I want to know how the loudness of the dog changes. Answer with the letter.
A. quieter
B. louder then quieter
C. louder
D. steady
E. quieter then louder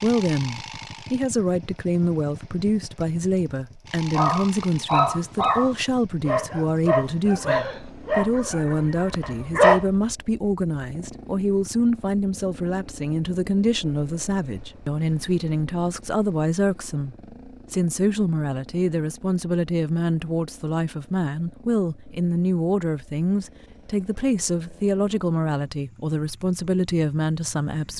A.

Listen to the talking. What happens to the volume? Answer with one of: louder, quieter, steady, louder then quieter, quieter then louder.
steady.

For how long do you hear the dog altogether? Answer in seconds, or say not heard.
6 s.